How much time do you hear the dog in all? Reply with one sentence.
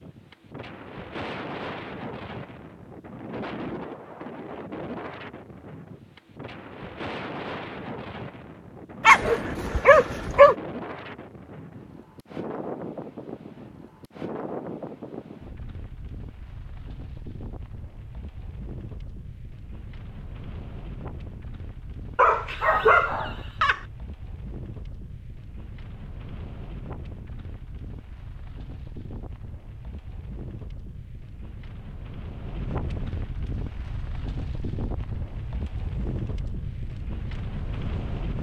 The dog can be heard for 3 seconds in total.